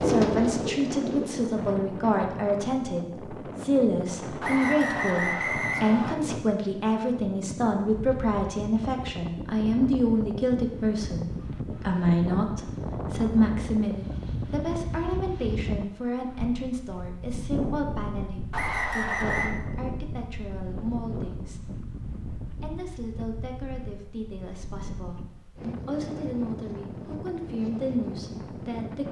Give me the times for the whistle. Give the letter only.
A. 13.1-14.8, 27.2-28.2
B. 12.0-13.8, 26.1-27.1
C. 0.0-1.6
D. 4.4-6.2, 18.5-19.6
D.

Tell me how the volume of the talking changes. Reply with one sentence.
The loudness of the talking goes down.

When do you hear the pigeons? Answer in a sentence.
The pigeons can be heard from 0.0 to 1.6 s.